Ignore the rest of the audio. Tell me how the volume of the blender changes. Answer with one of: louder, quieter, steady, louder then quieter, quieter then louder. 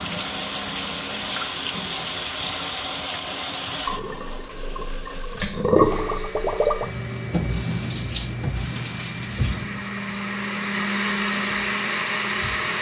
louder.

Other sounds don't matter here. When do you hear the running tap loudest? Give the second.
6 s.